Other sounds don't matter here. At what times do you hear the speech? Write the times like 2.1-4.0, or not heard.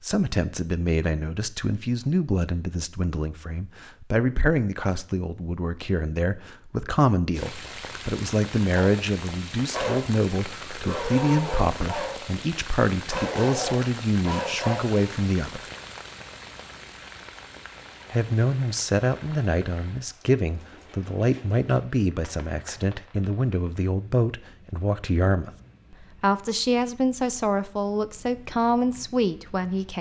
0.0-15.6, 18.1-29.9.